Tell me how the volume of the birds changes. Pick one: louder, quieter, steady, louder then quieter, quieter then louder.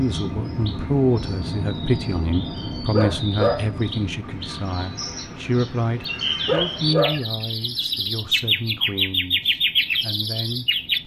louder.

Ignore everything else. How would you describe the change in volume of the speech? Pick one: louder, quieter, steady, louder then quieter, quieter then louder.
quieter.